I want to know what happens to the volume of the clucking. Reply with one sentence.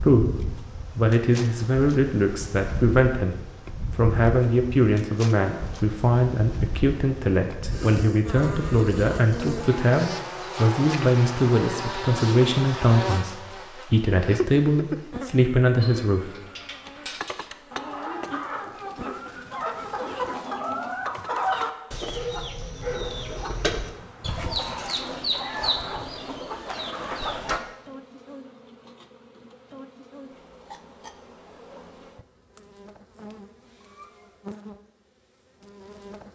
The loudness of the clucking goes up.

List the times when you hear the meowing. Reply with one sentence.
The meowing can be heard from 33.8 to 34.4 s.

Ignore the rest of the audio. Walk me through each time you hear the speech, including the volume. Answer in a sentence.
You can hear the speech from 0.0 to 16.4 s, at a steady volume.